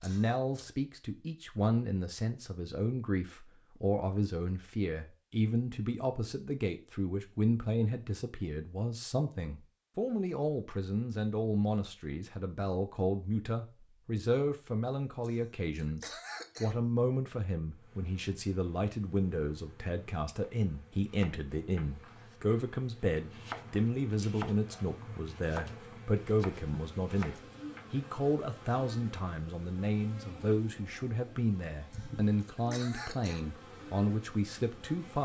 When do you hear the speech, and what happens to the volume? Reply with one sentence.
The speech can be heard from 0.0 to 35.2 s, at a steady volume.